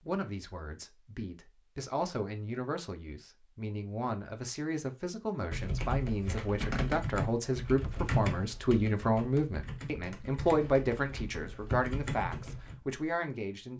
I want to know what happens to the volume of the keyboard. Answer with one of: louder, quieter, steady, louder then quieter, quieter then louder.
quieter then louder.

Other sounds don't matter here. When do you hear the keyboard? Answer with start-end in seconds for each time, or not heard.
5.5-12.8.